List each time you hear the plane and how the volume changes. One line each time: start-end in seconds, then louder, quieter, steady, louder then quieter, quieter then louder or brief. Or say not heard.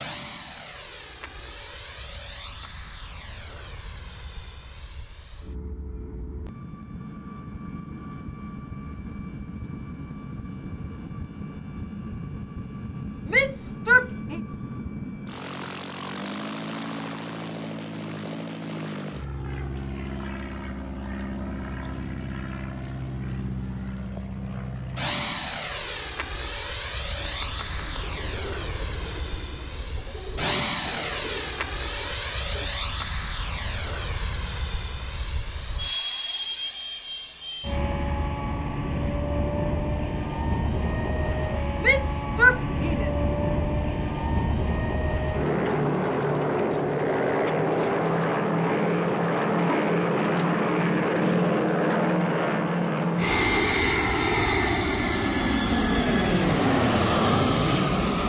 0.0-58.2 louder.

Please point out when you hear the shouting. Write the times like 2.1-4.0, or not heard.
13.2-14.4, 41.8-43.2.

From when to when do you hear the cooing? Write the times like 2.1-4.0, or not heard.
27.1-32.7.